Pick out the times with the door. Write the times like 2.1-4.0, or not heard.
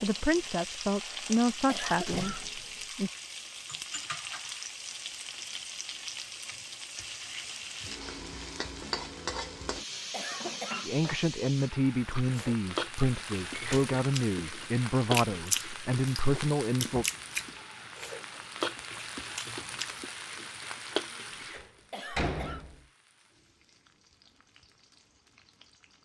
2.0-2.7, 13.4-13.9, 21.4-22.8.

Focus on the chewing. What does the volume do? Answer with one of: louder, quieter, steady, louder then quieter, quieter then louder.
louder then quieter.